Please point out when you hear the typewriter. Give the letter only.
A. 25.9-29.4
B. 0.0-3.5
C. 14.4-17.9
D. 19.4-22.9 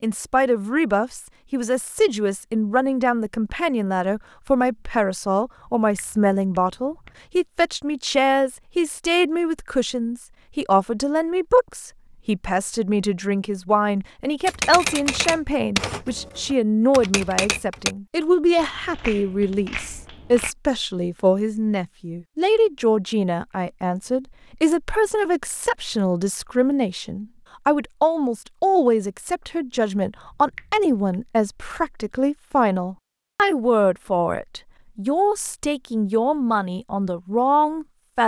C.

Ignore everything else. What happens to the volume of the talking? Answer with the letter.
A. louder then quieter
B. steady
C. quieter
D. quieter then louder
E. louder
B.